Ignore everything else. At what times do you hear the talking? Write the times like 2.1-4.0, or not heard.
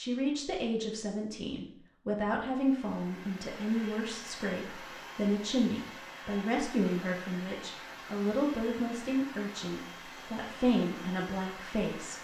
0.0-12.1.